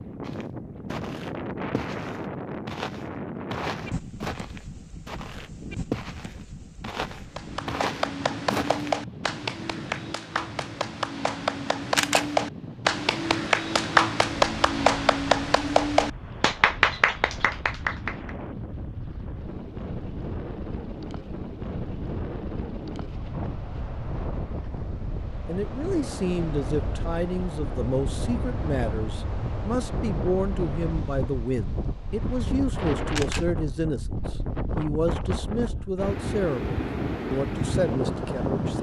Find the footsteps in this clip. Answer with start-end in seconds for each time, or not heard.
0.2-8.9.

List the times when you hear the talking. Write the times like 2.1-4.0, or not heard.
25.4-38.7.